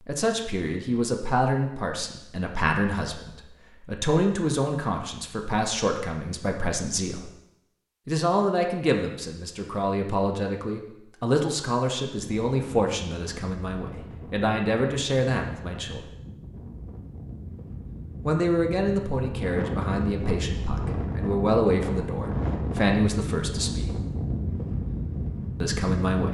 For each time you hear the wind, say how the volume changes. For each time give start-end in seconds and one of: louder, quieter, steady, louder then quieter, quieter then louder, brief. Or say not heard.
12.2-26.2 louder.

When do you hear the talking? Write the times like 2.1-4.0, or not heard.
0.1-7.3, 8.1-16.1, 18.2-23.9, 25.6-26.2.